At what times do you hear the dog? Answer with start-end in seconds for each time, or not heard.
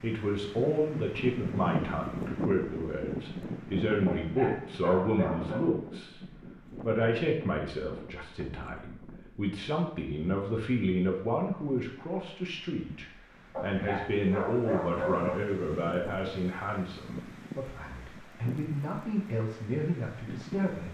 4.0-5.7, 13.5-15.4.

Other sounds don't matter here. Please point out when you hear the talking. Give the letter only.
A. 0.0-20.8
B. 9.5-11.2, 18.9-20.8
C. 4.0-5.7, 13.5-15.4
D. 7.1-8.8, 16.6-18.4
A.